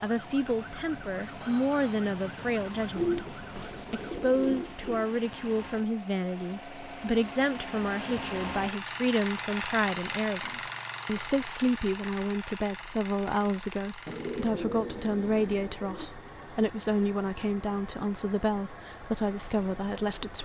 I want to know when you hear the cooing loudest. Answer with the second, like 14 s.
3 s.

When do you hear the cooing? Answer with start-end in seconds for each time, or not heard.
3.0-5.0, 14.1-16.1.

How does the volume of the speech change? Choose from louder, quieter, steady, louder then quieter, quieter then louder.
steady.